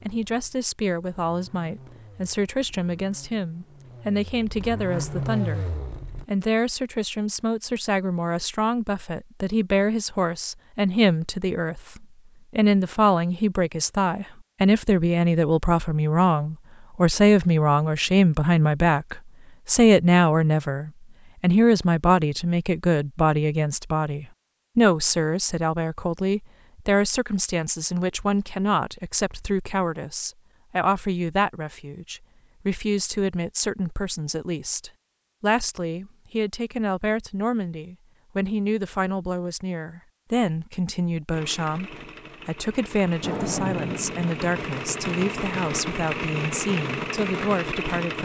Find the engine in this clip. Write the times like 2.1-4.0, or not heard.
0.0-6.2, 41.3-48.1.